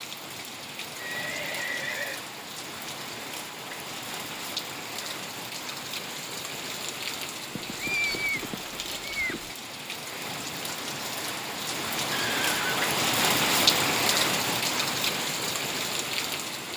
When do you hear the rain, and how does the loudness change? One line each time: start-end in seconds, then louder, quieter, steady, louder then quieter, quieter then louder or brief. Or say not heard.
0.0-16.7 louder.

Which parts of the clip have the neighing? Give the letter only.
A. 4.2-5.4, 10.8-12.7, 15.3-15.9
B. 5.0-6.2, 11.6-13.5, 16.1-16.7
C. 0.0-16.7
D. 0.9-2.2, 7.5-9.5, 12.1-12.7
D.